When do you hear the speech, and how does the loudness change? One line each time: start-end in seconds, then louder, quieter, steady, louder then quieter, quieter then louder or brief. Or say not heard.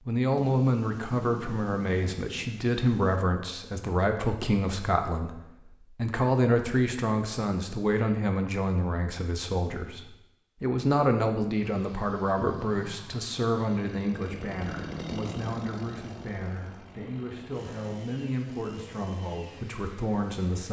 0.1-20.6 quieter.